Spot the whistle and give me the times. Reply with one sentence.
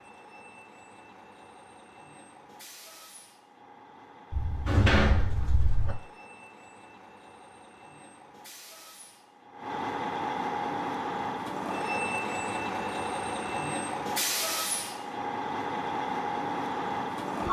You can't hear the whistle here.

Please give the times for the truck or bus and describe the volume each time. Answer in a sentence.
The truck or bus can be heard from 0.0 to 17.4 s, getting louder.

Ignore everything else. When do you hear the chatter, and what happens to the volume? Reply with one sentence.
The chatter can't be heard in this clip.